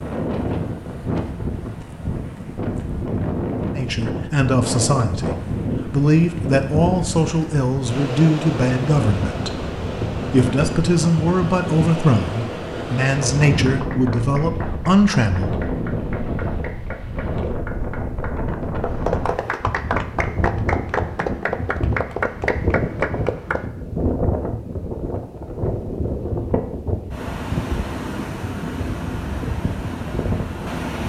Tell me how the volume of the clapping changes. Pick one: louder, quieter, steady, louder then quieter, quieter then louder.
louder.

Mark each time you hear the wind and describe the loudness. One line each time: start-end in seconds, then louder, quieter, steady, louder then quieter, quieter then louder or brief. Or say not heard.
0.0-31.0 steady.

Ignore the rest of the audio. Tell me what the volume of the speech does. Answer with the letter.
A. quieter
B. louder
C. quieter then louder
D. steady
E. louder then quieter
D.